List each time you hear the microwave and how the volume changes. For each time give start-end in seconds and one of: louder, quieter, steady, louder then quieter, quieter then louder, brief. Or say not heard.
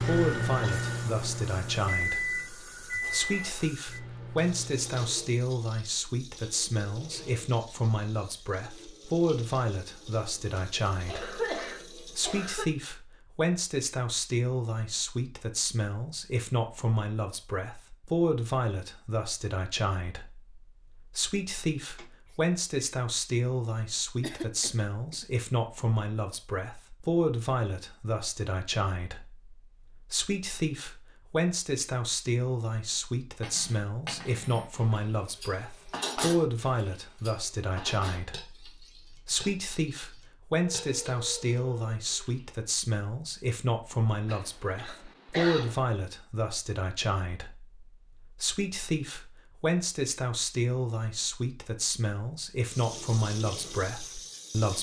0.0-5.0 quieter.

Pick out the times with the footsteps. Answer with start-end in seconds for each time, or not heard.
not heard.